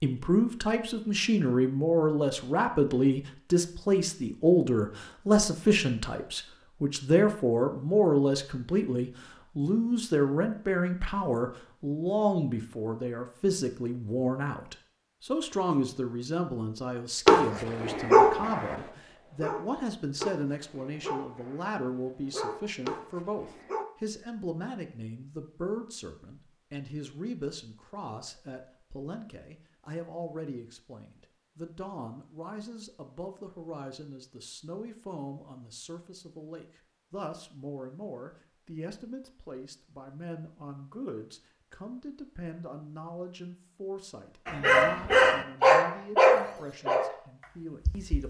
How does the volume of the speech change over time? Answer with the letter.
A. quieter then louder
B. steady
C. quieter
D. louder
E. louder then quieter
C.